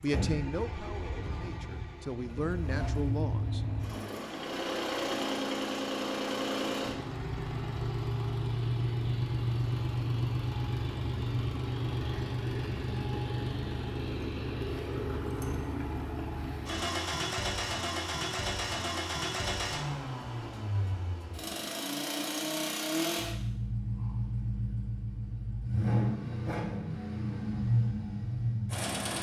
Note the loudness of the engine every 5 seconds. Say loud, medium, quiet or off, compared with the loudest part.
medium, loud, loud, loud, loud, loud.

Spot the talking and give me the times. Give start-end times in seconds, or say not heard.
0.0-3.6.